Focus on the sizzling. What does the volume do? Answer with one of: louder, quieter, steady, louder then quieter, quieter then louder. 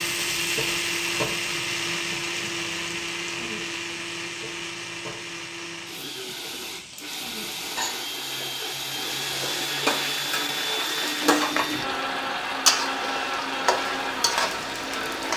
quieter then louder.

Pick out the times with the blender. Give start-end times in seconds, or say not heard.
0.0-15.3.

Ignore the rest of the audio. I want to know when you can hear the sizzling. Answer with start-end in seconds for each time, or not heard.
0.0-15.3.